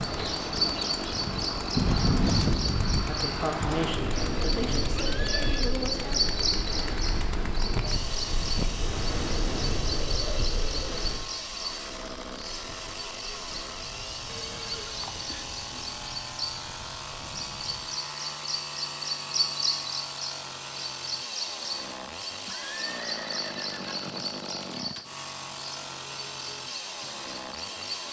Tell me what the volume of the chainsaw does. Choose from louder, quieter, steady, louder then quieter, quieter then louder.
steady.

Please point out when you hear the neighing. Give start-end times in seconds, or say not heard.
5.0-5.7, 14.2-15.3, 22.4-24.2.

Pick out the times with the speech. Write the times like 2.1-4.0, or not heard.
3.0-6.1.